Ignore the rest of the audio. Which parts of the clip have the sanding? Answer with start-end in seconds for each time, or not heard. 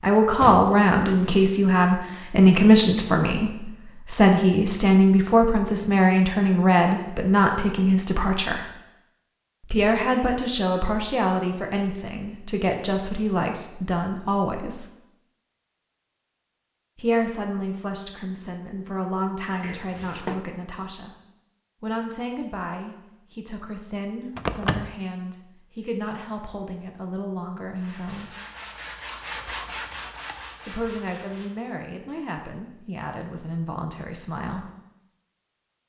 27.8-31.5.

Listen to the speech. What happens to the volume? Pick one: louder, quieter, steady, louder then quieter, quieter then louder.
quieter.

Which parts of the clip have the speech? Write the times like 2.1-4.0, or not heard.
0.0-8.7, 9.7-14.8, 16.9-21.1, 21.8-28.3, 30.6-34.7.